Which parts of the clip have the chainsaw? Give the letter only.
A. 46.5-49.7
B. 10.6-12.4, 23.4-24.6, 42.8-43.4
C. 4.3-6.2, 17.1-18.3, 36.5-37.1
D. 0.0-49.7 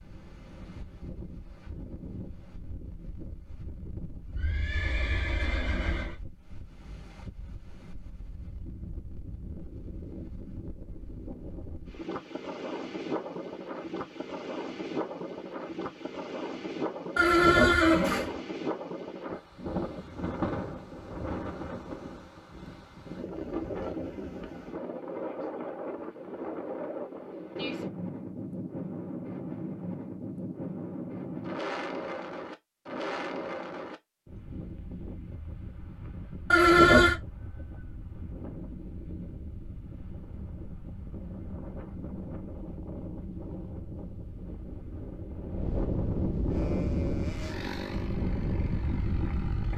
A.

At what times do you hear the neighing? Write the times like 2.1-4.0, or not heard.
4.3-6.2, 17.1-18.3, 36.5-37.1.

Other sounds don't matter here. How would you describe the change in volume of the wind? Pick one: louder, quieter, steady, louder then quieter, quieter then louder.
louder.